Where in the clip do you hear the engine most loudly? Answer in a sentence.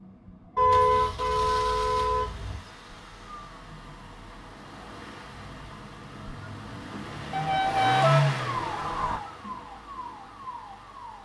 The volume of the engine peaks at 8 seconds.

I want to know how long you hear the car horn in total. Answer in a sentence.
The car horn can be heard for 4 seconds in total.